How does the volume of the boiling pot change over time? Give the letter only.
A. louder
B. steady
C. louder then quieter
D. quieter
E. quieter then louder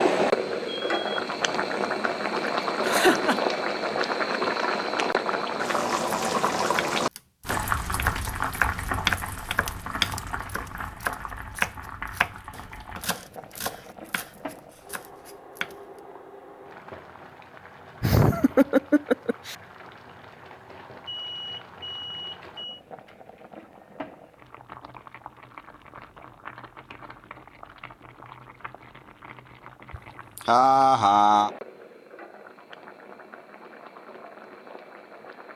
D.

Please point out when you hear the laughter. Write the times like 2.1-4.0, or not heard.
2.4-3.5, 18.0-19.6, 29.9-31.5.